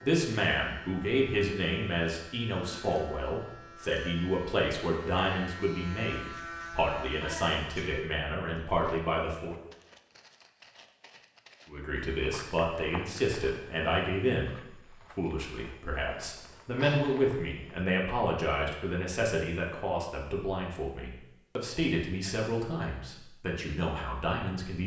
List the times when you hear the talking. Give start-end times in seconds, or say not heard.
0.0-9.6, 11.7-24.8.